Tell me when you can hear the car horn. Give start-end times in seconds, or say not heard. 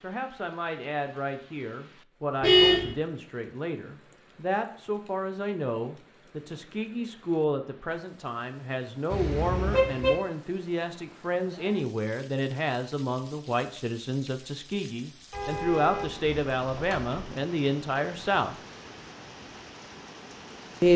2.4-2.9, 9.1-10.2, 15.3-17.3.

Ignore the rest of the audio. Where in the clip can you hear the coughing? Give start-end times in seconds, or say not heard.
not heard.